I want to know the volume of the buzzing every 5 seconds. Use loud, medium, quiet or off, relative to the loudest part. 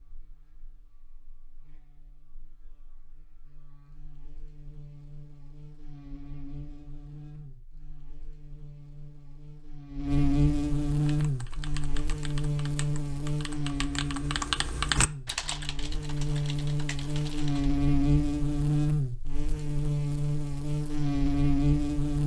quiet, quiet, loud, loud, loud.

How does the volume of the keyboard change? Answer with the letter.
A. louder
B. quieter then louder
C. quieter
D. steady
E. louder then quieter
E.